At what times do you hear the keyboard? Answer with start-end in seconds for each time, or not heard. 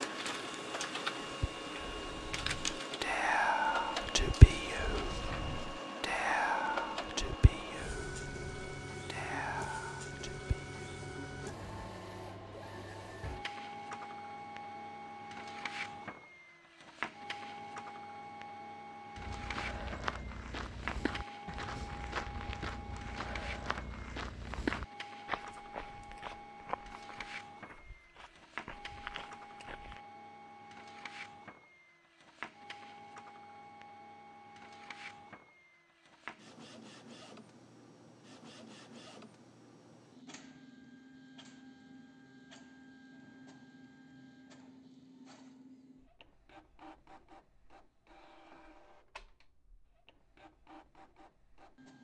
not heard.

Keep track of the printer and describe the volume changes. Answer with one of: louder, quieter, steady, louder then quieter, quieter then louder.
quieter.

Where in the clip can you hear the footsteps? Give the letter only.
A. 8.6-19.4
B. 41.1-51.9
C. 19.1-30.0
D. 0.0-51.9
C.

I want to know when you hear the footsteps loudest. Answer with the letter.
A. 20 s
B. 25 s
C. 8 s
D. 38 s
B.